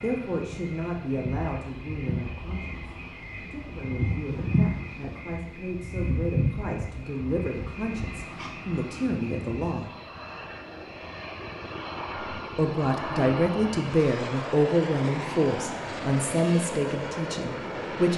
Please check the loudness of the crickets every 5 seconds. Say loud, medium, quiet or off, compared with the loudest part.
loud, loud, off, off.